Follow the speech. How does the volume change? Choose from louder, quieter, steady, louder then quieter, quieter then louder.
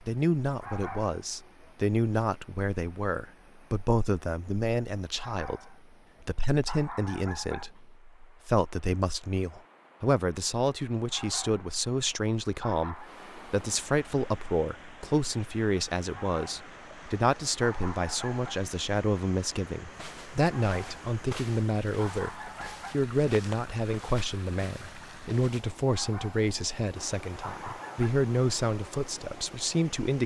steady.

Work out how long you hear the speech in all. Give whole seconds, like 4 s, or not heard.
30 s.